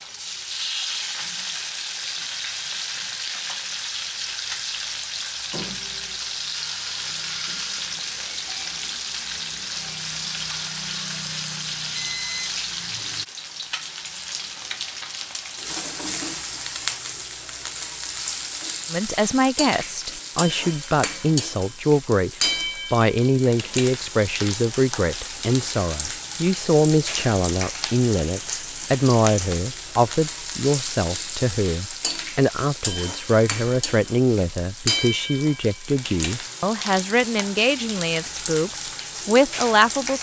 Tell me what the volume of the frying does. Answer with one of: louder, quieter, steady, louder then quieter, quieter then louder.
steady.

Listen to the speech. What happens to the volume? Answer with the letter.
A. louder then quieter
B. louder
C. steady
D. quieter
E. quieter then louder
C.